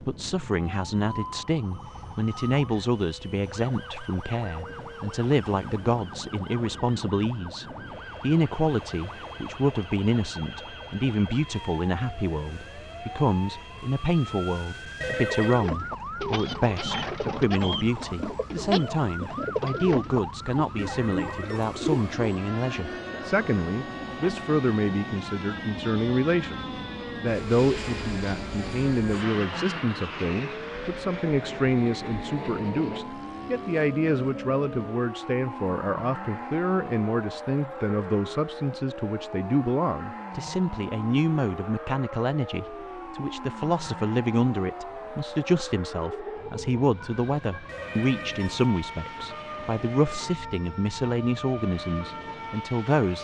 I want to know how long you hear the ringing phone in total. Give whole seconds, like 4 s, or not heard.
3 s.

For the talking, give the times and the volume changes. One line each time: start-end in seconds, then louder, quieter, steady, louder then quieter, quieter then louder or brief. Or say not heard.
0.1-53.2 steady.